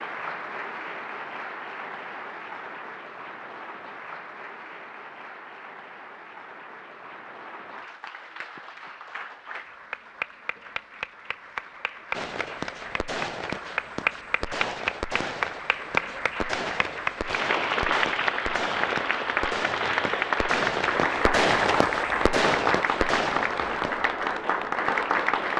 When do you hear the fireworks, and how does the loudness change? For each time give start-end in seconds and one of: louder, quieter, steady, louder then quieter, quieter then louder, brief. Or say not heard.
12.1-23.9 louder.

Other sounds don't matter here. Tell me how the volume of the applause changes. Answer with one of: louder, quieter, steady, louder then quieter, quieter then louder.
louder.